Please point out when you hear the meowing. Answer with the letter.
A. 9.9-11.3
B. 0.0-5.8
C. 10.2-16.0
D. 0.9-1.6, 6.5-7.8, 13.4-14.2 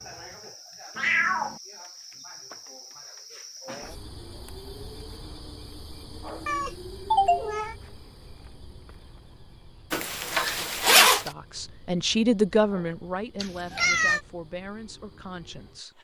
D.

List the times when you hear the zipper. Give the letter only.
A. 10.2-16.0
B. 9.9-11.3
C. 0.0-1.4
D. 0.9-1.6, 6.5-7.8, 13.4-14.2
B.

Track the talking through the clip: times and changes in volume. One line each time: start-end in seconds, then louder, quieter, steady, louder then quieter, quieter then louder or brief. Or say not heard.
10.2-16.0 louder then quieter.